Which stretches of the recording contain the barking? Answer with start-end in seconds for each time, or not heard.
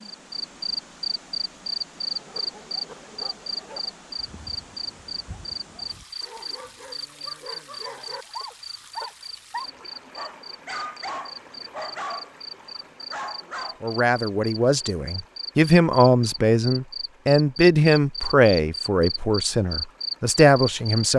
2.0-13.8.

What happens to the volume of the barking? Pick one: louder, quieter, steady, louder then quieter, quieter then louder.
louder.